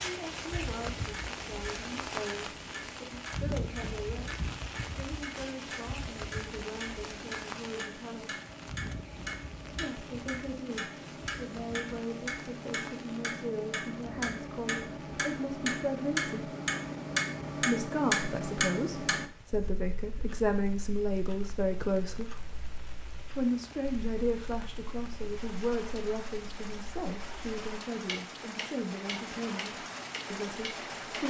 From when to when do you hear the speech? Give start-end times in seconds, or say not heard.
0.0-8.3, 9.7-16.5, 17.6-22.4, 23.4-31.2.